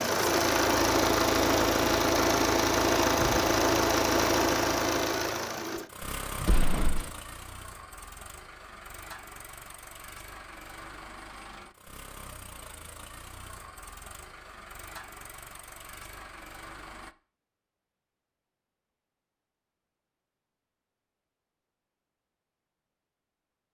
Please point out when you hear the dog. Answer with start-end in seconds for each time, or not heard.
not heard.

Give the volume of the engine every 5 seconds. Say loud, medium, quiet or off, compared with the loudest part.
loud, quiet, quiet, quiet, off.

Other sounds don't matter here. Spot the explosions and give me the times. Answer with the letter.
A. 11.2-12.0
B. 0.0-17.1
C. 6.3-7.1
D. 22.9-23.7
C.